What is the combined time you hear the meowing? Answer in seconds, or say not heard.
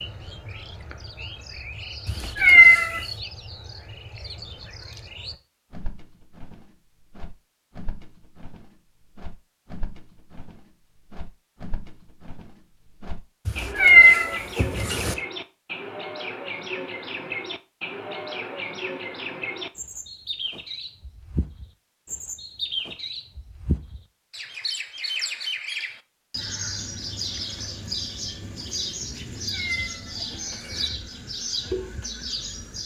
4 s.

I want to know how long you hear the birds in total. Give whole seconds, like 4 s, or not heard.
33 s.